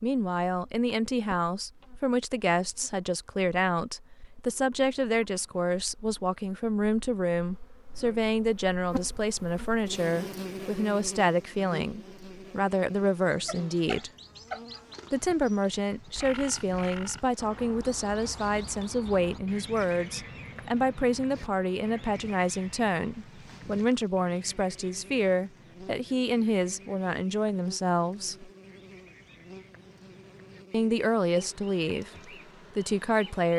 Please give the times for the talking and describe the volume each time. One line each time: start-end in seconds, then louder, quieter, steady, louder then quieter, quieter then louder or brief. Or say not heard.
0.0-14.1 steady
15.1-28.5 steady
30.7-33.5 brief.